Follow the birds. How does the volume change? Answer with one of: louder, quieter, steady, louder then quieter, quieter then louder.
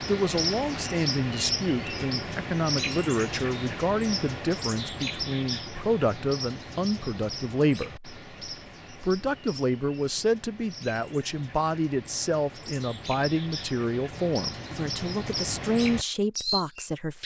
quieter then louder.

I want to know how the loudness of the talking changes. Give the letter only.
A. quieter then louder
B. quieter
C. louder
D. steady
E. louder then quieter
D.